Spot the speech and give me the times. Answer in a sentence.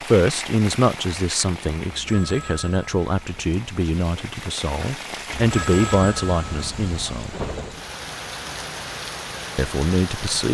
The speech can be heard from 0.1 to 7.3 s and from 9.6 to 10.4 s.